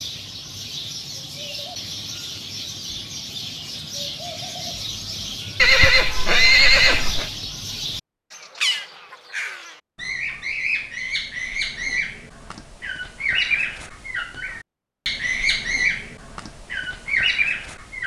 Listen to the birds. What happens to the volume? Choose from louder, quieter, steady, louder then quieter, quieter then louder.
louder.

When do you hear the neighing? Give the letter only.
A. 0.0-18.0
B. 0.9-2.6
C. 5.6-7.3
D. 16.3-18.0
C.